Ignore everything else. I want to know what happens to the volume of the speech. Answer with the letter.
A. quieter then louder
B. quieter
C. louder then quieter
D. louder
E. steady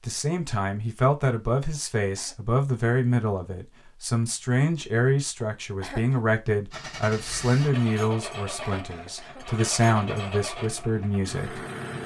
E.